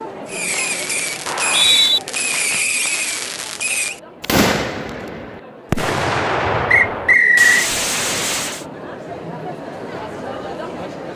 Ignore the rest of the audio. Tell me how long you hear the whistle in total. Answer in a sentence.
You can hear the whistle for 2 seconds altogether.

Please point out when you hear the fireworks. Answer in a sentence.
You can hear the fireworks from 0.2 to 8.7 s.